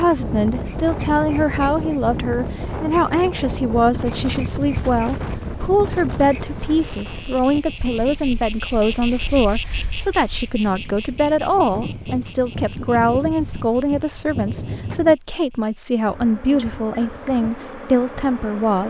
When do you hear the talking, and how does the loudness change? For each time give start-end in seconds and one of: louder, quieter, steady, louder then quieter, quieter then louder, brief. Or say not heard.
0.0-18.8 steady.